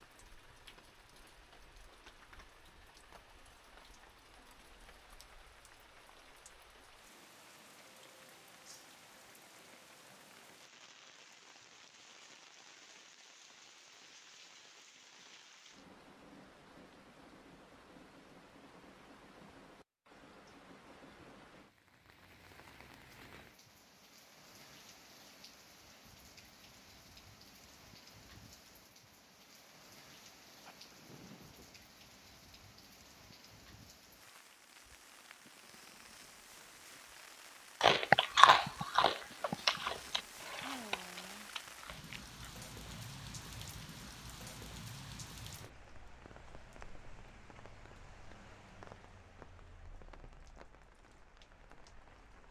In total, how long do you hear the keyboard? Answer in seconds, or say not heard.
not heard.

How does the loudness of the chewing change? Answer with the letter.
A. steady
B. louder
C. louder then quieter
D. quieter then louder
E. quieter
E.